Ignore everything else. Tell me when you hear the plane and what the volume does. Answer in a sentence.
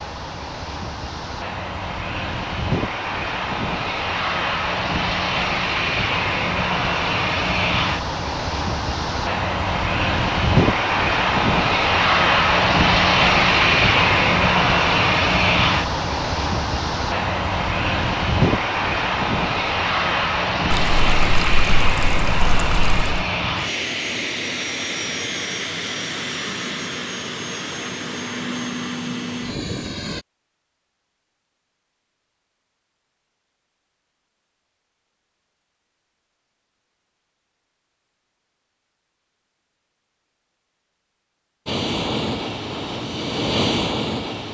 You can hear the plane from 0.0 to 30.2 s, getting louder then quieter; and briefly from 41.6 to 44.4 s.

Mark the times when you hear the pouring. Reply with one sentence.
You can hear the pouring from 20.7 to 23.2 s.